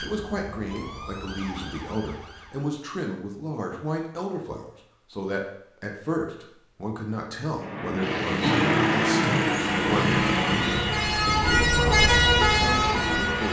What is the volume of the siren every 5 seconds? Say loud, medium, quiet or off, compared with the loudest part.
quiet, off, loud.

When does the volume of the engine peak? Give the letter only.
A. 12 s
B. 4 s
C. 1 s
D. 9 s
D.